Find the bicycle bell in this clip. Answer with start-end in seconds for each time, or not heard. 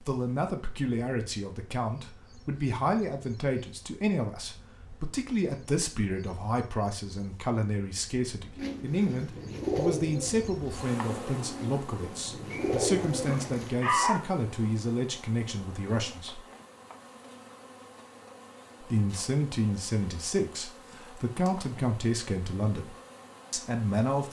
not heard.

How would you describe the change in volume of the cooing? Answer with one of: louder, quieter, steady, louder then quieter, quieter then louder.
quieter then louder.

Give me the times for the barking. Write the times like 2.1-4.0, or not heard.
12.5-14.2.